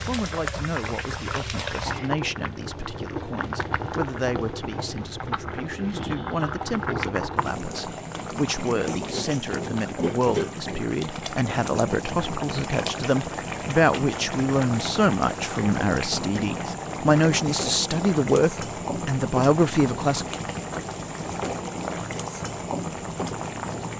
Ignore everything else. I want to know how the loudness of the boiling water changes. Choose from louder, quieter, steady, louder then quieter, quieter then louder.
steady.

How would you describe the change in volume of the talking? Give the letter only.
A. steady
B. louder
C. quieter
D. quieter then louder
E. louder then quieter
B.